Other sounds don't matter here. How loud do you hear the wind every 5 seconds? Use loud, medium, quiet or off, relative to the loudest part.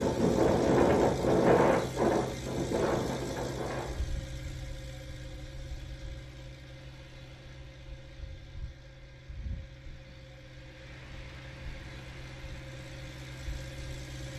loud, quiet, quiet.